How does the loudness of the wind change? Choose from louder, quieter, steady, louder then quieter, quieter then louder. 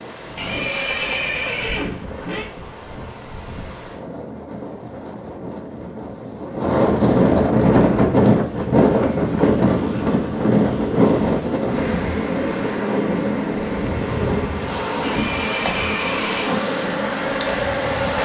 louder then quieter.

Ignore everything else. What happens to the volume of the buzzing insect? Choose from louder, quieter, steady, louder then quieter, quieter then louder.
louder.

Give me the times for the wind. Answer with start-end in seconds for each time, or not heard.
0.0-18.2.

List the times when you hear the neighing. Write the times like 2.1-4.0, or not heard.
0.3-2.5, 15.0-16.6.